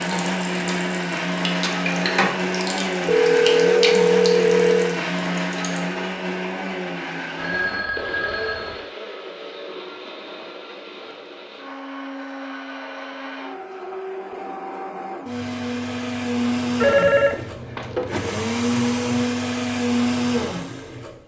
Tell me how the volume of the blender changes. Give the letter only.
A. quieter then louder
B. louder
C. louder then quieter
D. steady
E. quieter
A.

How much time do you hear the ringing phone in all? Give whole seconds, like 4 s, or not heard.
5 s.